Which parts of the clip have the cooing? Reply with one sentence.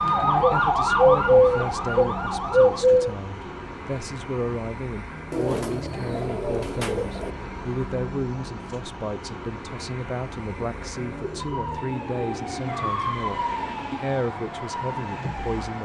The cooing can be heard from 0.4 to 3.1 s, from 5.3 to 7.3 s and from 10.6 to 12.8 s.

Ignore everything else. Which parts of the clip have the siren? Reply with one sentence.
You can hear the siren from 0.0 to 2.8 s and from 11.3 to 15.7 s.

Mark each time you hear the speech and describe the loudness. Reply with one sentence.
The speech can be heard from 0.0 to 15.7 s, at a steady volume.